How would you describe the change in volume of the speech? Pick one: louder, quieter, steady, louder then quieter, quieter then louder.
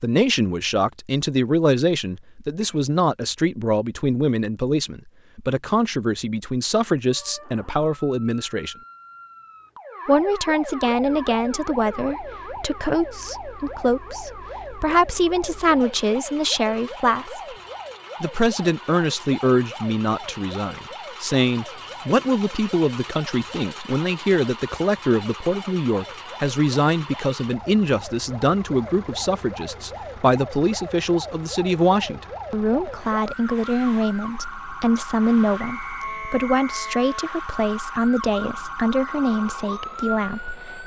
steady.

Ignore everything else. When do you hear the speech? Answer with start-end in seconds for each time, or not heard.
0.0-8.8, 10.1-17.6, 18.2-40.8.